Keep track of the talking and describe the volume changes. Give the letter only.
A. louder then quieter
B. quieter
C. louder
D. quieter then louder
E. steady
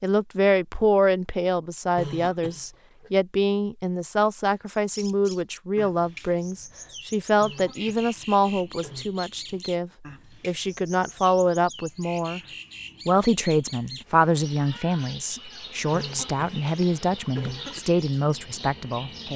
E.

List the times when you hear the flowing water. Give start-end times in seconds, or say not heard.
not heard.